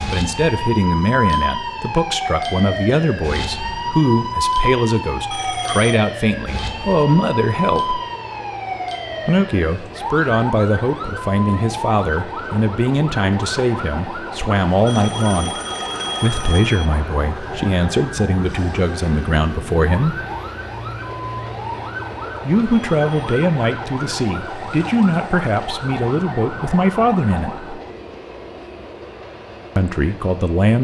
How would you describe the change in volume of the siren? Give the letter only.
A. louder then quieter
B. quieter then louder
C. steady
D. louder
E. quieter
E.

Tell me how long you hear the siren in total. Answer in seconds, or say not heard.
28 s.